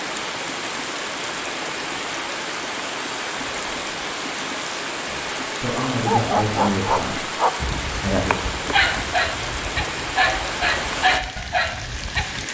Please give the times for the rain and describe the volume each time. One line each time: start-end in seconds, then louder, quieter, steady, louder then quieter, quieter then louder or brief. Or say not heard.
0.0-12.4 steady.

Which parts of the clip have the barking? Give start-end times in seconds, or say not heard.
5.9-12.4.